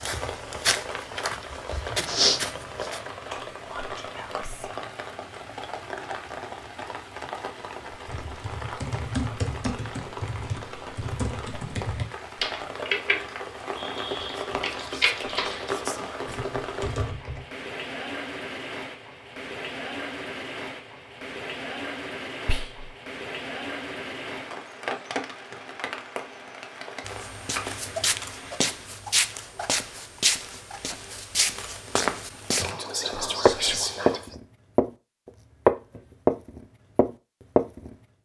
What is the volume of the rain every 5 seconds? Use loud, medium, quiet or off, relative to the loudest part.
loud, loud, loud, loud, loud, loud, off, off.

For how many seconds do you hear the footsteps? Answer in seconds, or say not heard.
13 s.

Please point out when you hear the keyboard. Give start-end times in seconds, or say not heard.
7.9-17.4.